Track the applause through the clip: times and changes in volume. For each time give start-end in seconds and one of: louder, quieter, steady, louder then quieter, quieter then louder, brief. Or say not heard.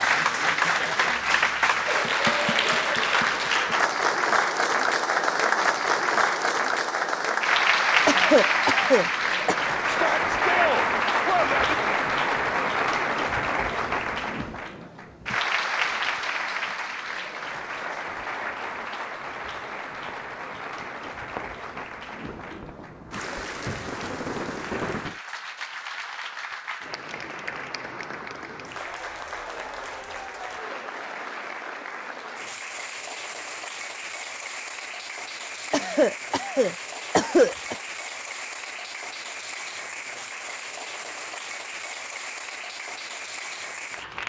0.0-44.2 quieter.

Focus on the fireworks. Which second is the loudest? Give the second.
25 s.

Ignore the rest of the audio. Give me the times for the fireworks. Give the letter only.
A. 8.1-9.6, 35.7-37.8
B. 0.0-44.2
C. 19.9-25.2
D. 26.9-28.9
C.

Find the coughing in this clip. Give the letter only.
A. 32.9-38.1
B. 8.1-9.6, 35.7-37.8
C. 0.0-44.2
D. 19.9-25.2
B.